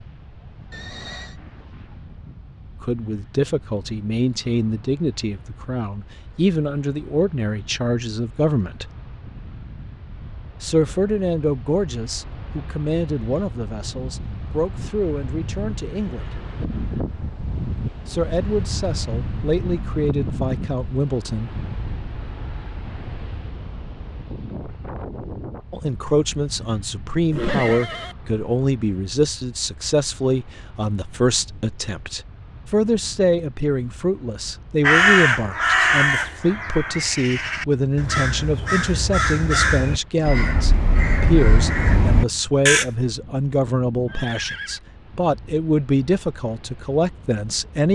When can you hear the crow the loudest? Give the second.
35 s.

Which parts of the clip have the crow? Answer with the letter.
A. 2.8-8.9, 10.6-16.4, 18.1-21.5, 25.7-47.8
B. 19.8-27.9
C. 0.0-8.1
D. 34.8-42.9
D.